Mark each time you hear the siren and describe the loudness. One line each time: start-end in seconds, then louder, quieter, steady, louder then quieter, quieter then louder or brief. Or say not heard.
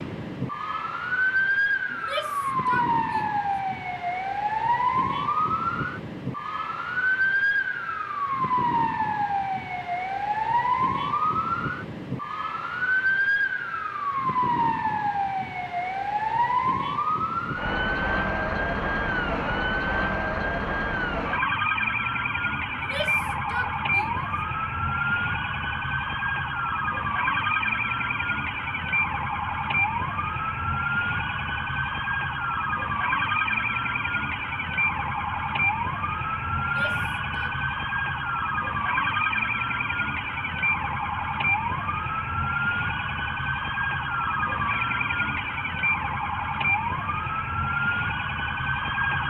0.0-49.2 steady.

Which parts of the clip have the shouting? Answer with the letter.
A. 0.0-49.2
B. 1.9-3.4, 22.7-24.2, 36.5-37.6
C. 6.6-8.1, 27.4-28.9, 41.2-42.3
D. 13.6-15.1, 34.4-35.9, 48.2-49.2
B.